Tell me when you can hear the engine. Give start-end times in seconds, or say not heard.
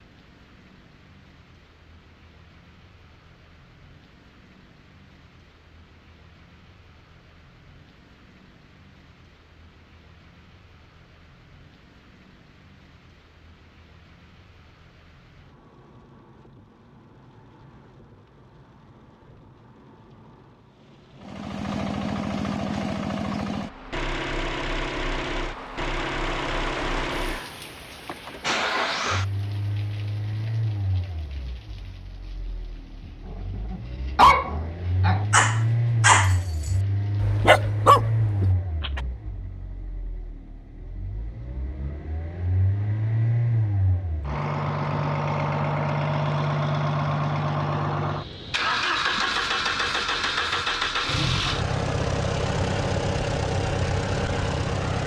21.1-55.0.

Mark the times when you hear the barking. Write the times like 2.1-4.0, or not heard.
33.7-39.0.